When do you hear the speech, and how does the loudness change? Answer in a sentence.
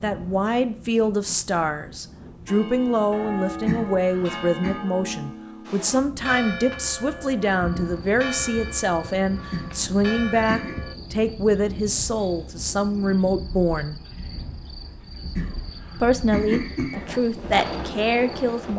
You can hear the speech from 0.0 to 13.9 s, at a steady volume; and briefly from 16.0 to 18.7 s.